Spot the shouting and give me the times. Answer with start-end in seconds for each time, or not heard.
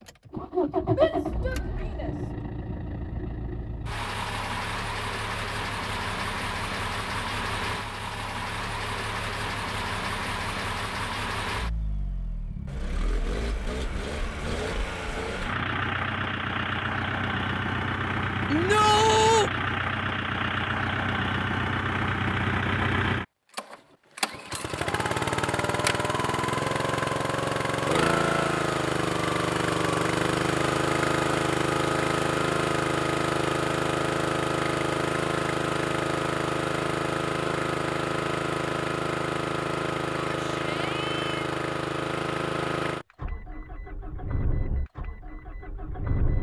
0.9-2.1, 18.5-19.5, 40.2-41.5.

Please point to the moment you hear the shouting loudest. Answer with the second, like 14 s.
19 s.